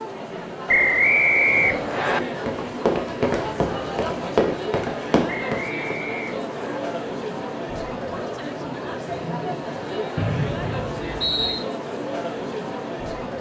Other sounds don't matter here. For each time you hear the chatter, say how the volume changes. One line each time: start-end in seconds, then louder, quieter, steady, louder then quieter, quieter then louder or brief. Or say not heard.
0.0-13.3 steady.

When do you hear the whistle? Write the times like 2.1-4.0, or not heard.
0.7-2.2, 5.2-6.8, 10.2-11.7.